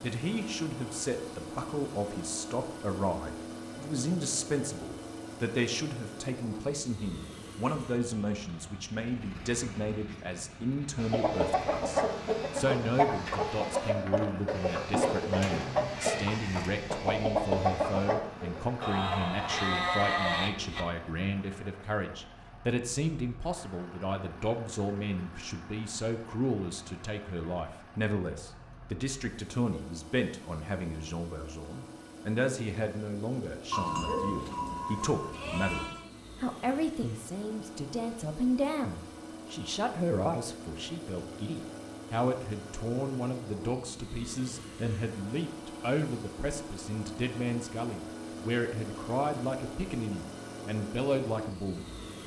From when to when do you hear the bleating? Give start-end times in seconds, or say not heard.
18.8-20.9, 33.7-36.0.